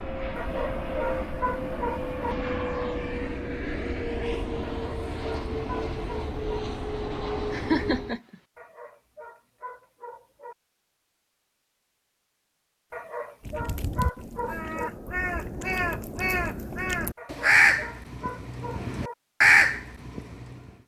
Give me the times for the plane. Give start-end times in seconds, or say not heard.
0.0-8.2.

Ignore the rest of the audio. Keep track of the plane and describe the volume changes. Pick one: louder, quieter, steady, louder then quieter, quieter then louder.
steady.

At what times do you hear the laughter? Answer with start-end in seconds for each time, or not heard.
7.5-8.3.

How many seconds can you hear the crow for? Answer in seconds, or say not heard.
7 s.